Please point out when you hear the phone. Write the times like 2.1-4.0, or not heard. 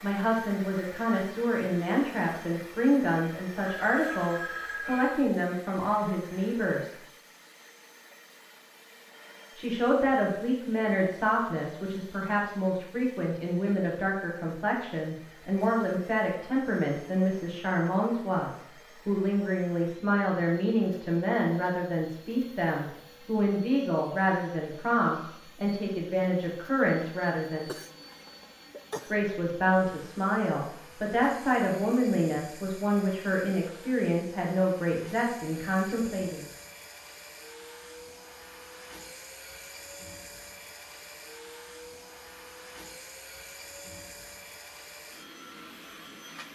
3.6-5.2.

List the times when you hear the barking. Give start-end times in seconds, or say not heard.
not heard.